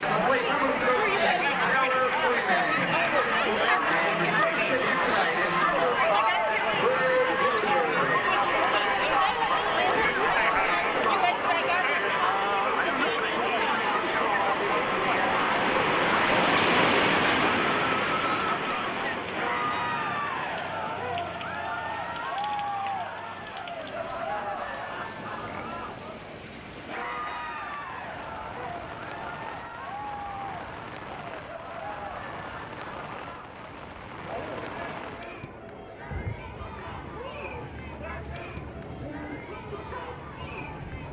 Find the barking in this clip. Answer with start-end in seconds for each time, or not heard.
not heard.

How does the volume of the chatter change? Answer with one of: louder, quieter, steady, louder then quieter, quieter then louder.
quieter.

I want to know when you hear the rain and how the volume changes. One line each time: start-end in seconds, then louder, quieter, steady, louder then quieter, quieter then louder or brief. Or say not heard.
0.0-41.0 louder then quieter.